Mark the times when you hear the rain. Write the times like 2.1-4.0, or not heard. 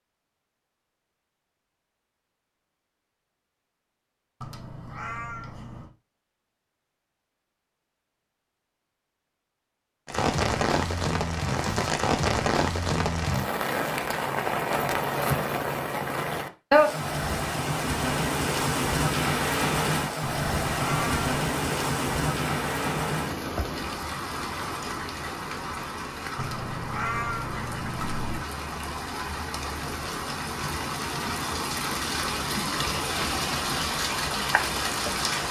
10.1-35.4.